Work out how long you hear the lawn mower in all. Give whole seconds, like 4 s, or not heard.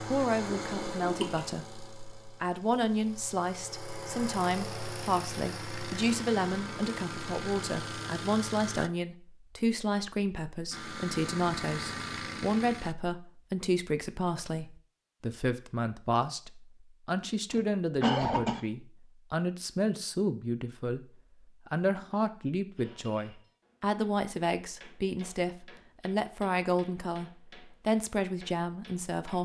11 s.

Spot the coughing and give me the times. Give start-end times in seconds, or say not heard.
0.5-1.5, 17.5-18.6.